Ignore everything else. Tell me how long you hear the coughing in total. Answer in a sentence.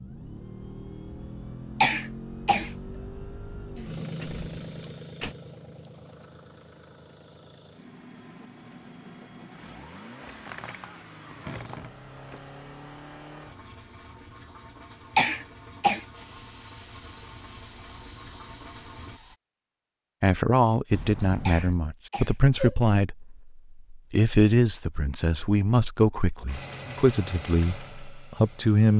You can hear the coughing for 3 seconds altogether.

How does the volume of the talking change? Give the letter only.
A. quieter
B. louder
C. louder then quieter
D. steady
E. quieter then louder
D.